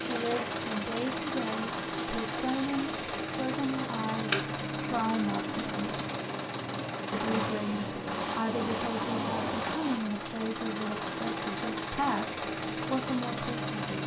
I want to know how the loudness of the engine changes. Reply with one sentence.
The loudness of the engine stays about the same.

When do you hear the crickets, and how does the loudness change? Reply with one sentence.
You can hear the crickets from 0.0 to 14.0 s, at a steady volume.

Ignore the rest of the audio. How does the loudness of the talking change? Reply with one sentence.
The volume of the talking stays about the same.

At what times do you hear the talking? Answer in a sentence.
The talking can be heard from 0.0 to 6.0 s and from 7.1 to 14.0 s.